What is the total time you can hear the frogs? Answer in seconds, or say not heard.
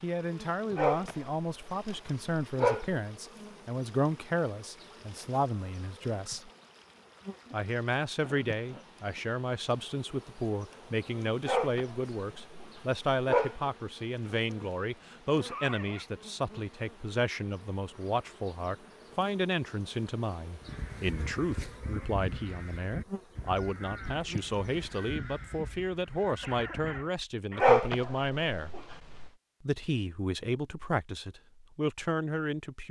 not heard.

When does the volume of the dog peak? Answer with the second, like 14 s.
28 s.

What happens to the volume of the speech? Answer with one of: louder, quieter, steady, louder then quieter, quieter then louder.
steady.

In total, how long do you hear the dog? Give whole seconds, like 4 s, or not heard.
6 s.